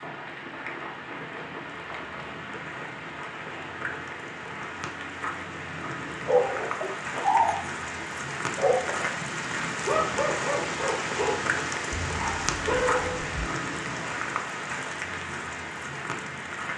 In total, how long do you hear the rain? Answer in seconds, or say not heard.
17 s.